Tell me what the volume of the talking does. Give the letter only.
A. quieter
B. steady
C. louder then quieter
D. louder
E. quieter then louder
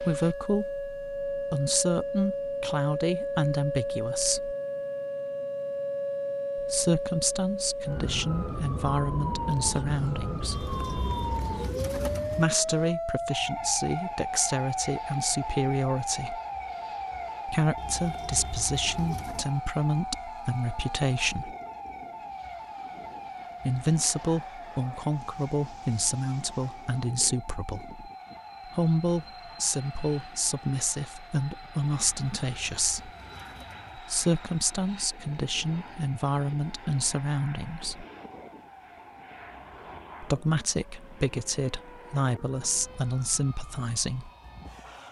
B.